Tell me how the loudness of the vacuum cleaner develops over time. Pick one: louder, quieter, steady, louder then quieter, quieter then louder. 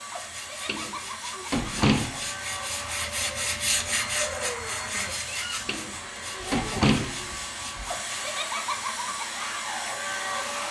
louder.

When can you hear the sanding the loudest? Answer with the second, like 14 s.
4 s.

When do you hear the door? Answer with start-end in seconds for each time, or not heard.
0.7-2.2, 5.7-7.2.